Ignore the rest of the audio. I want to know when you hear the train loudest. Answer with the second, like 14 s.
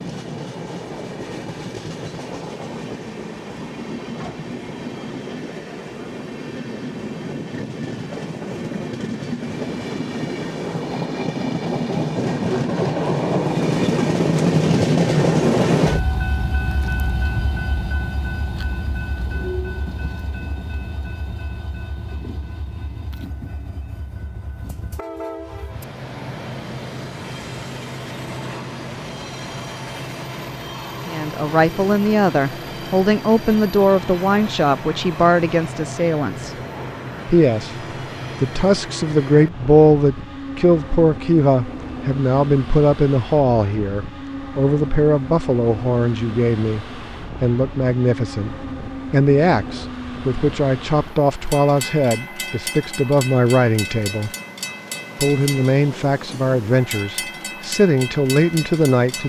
15 s.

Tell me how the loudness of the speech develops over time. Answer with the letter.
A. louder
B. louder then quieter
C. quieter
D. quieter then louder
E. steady
E.